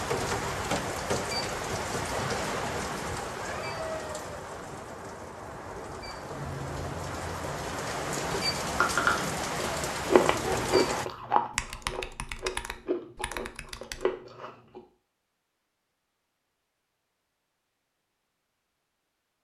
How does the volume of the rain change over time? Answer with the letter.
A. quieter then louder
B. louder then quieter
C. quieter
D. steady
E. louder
A.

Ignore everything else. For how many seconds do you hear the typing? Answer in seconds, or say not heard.
3 s.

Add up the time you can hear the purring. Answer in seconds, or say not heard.
not heard.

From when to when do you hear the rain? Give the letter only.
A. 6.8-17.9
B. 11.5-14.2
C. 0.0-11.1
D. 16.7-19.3
C.